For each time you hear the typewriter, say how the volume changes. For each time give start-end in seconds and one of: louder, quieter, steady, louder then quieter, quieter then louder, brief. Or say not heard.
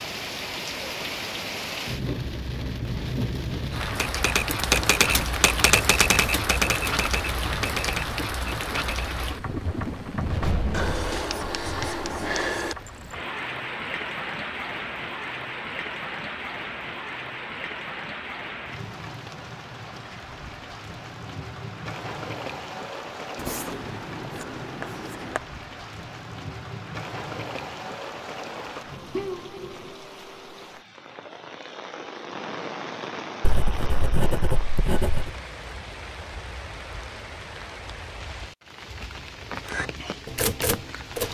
3.8-9.2 quieter
39.6-41.2 brief.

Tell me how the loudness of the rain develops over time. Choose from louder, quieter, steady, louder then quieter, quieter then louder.
quieter.